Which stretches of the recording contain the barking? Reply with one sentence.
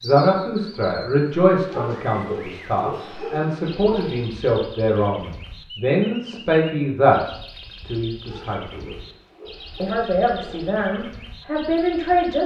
The barking can be heard from 1.6 to 4.2 s and from 8.2 to 10.7 s.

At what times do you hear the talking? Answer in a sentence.
The talking can be heard from 0.0 to 8.9 s and from 9.8 to 12.4 s.